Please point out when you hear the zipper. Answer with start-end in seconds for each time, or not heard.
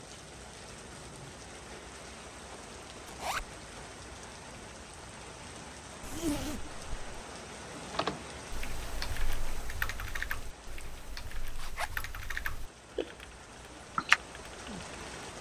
3.0-3.5, 6.0-7.2, 11.6-12.1.